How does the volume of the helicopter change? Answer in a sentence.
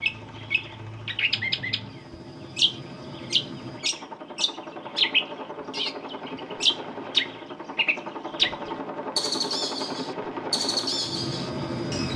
The volume of the helicopter goes up.